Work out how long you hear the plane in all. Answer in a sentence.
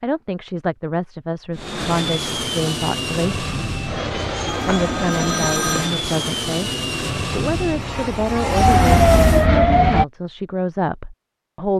The plane can be heard for 8 seconds in total.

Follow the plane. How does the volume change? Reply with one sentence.
The loudness of the plane stays about the same.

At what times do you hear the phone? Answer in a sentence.
You can hear the phone from 4.5 to 5.9 s.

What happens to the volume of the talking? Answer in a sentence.
The loudness of the talking stays about the same.